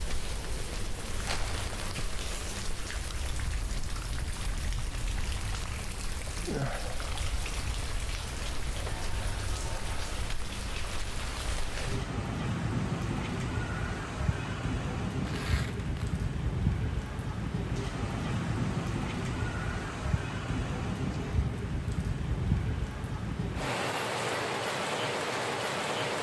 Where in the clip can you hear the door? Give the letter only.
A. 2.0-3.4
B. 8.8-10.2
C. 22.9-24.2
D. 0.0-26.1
B.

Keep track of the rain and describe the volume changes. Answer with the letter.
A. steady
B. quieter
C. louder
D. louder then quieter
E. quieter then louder
C.